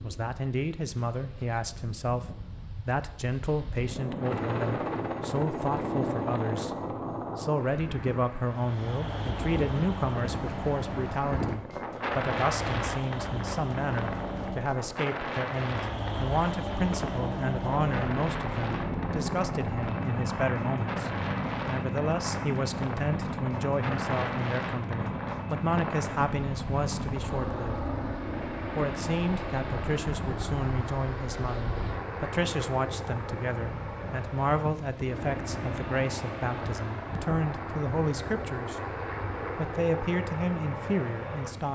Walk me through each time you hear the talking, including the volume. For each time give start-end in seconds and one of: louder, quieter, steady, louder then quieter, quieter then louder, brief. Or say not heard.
0.0-27.8 steady
28.8-41.7 steady.